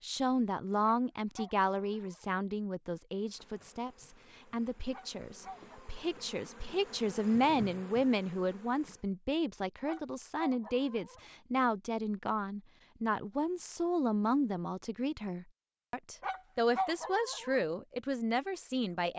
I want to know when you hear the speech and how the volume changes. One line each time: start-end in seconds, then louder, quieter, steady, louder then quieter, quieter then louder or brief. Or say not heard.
0.0-19.1 steady.